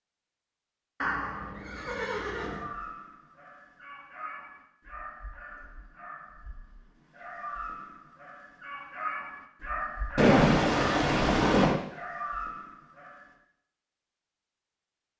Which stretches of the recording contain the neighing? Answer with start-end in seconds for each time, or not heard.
1.0-2.7, 10.2-11.8.